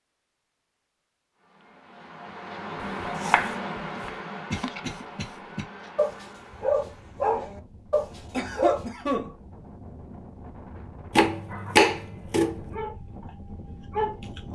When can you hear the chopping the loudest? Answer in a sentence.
The loudest moment of the chopping is at 12 seconds.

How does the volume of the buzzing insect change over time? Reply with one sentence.
The volume of the buzzing insect goes up, then down.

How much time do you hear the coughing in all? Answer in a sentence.
The coughing can be heard for 2 seconds in total.